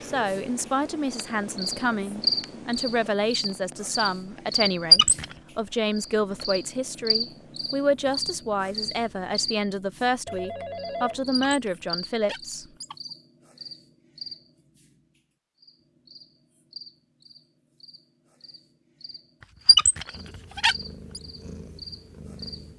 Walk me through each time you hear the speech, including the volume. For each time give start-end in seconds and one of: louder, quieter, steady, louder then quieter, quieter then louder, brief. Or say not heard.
0.0-12.7 steady.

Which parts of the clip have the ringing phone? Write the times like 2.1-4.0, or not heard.
10.2-11.6.